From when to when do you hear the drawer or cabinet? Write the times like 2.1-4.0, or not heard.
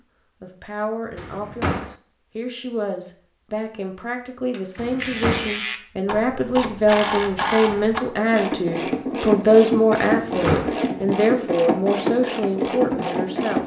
1.1-1.9, 4.8-5.5, 10.2-10.8.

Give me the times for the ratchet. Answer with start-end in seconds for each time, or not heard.
4.5-13.6.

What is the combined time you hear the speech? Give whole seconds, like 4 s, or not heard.
13 s.